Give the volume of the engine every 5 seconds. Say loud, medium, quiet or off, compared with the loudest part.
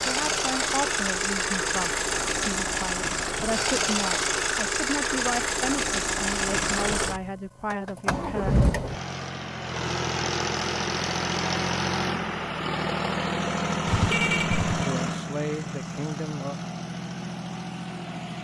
loud, loud, loud, medium.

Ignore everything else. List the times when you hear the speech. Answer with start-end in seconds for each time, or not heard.
0.0-8.6, 14.8-16.6.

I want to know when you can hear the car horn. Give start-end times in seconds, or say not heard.
13.8-14.8.